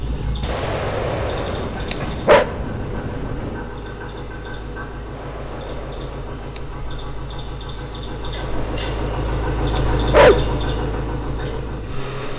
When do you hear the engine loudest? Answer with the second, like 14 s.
10 s.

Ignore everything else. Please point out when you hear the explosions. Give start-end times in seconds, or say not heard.
0.4-3.8.